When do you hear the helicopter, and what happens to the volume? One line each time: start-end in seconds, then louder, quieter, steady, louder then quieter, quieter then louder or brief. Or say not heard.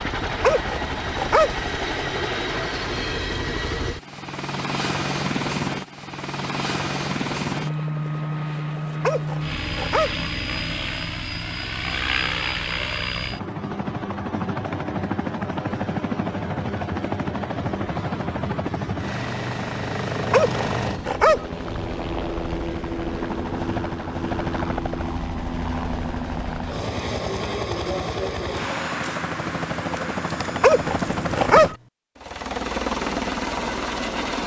0.0-34.4 steady.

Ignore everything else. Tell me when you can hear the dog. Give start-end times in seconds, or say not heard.
0.4-1.6, 9.0-10.2, 20.3-21.4, 30.6-31.8.